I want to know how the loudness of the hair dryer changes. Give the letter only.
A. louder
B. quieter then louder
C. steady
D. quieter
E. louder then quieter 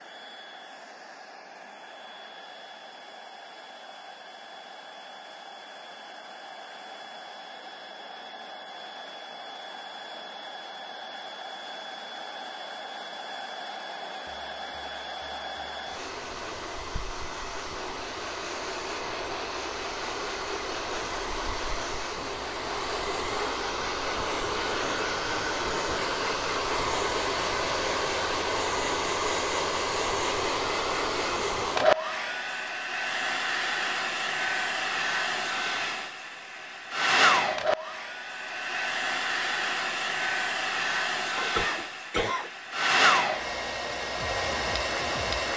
A.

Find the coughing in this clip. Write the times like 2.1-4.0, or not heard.
41.4-42.5.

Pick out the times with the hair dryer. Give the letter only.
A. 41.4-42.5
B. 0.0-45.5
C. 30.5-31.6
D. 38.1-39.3
B.